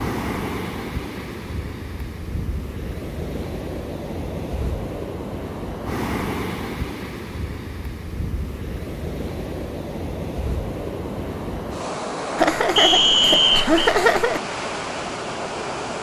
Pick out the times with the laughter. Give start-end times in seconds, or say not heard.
12.3-14.4.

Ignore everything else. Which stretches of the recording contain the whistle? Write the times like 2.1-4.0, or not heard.
12.8-13.8.